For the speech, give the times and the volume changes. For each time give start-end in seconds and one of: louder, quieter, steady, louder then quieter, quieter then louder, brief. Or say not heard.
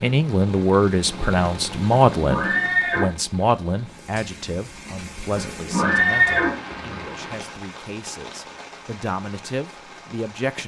0.0-10.6 quieter then louder.